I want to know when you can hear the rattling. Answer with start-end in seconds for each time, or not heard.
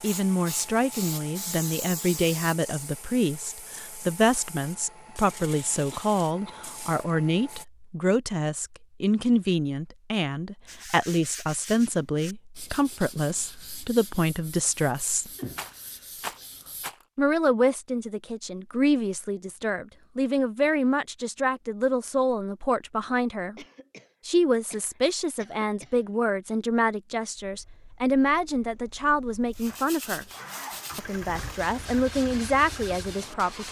15.5-17.1.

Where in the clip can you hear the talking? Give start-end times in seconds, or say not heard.
0.0-15.3, 17.1-23.6, 24.2-30.2, 30.9-33.6.